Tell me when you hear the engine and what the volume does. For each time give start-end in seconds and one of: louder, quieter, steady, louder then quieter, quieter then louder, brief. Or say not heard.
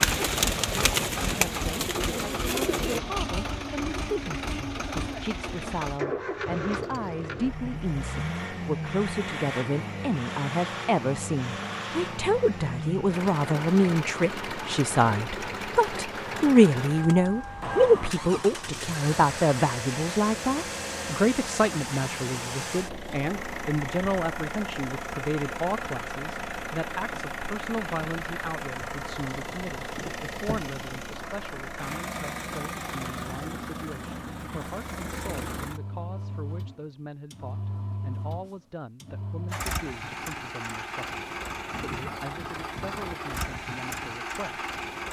0.0-45.0 steady.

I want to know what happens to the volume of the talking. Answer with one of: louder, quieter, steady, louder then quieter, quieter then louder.
louder then quieter.